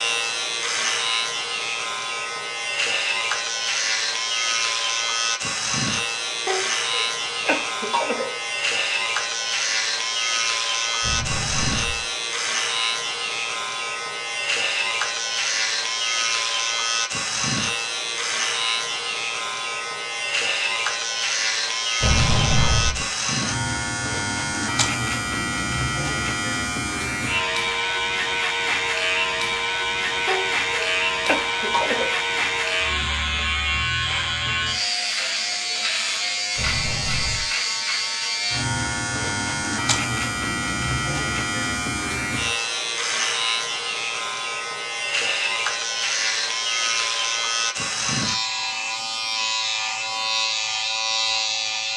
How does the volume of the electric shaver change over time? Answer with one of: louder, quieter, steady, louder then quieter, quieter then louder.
steady.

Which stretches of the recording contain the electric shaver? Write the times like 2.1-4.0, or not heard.
0.0-51.9.